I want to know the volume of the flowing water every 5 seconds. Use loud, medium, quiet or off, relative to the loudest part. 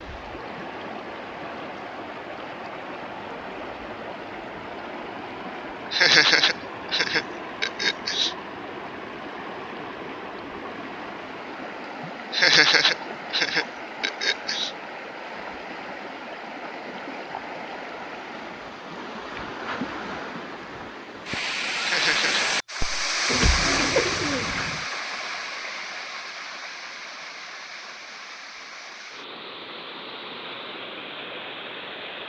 medium, medium, medium, medium, loud, medium, medium.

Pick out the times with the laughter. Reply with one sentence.
The laughter can be heard from 5.9 to 8.3 s, from 12.3 to 14.7 s and from 21.8 to 22.4 s.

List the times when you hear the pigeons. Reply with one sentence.
The pigeons can be heard from 23.2 to 24.9 s.